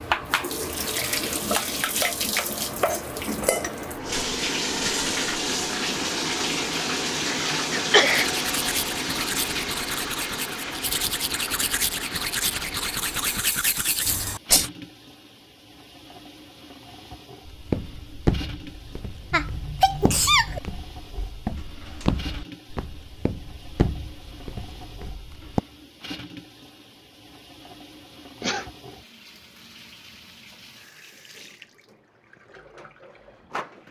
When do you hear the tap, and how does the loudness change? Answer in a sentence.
The tap can be heard from 0.0 to 33.8 s, getting quieter.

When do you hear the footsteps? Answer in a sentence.
The footsteps can be heard from 17.4 to 25.6 s.